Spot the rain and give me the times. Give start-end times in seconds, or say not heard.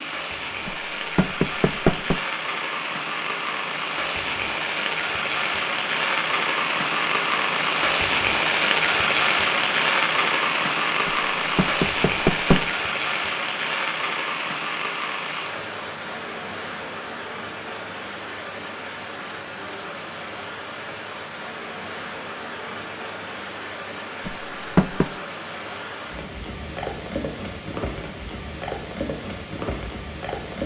0.0-30.6.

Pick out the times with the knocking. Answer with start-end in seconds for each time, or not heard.
0.7-2.2, 11.1-12.7, 24.2-25.1.